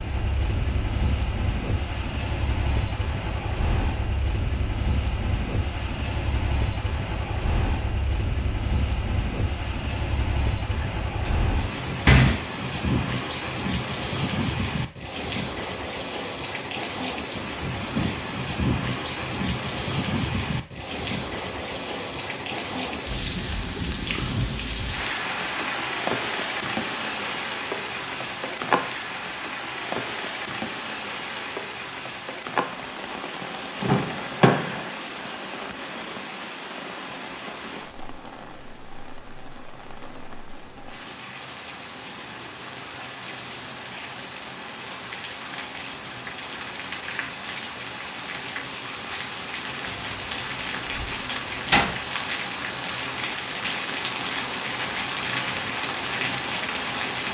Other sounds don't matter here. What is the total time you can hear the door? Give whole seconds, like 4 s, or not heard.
5 s.